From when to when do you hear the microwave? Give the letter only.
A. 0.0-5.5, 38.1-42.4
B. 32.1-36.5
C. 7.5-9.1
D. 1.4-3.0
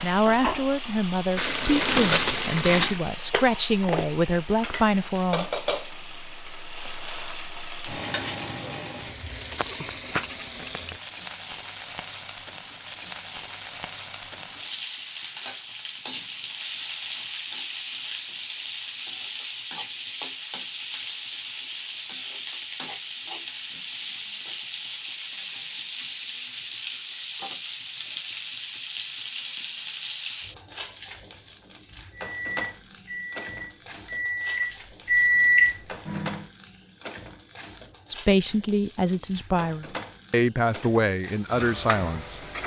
B.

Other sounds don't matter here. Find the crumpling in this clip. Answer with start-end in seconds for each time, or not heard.
1.4-3.0.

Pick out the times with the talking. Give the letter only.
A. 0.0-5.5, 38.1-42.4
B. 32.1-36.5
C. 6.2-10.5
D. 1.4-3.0
A.